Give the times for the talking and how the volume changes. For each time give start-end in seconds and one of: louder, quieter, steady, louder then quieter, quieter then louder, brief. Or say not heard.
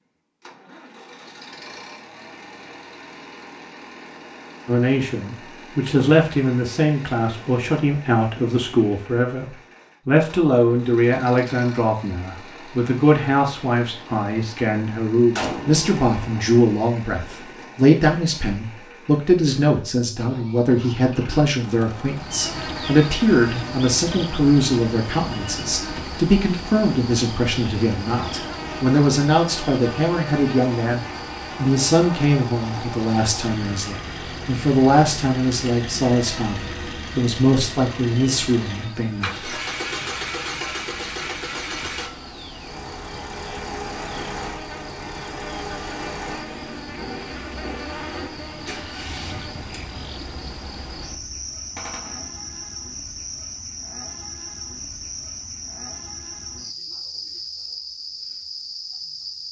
4.7-39.5 steady.